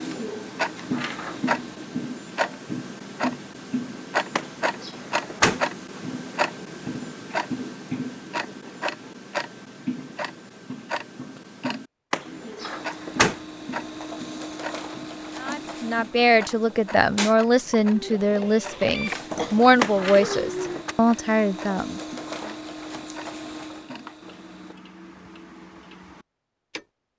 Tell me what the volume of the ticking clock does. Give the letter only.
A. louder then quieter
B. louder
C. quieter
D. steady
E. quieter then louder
C.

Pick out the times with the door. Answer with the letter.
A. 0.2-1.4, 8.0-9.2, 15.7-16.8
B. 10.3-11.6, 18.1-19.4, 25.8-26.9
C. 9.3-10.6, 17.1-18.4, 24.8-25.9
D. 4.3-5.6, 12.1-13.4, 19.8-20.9
D.